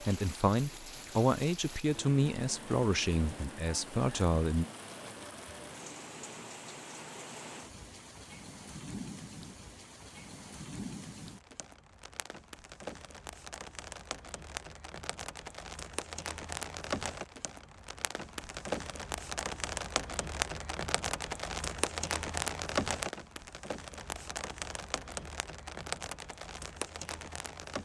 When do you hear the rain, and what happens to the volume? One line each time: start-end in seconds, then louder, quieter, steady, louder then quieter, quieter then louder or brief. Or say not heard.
0.0-27.8 louder.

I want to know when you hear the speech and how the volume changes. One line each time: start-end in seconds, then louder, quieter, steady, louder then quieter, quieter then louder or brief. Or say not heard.
0.0-4.7 steady.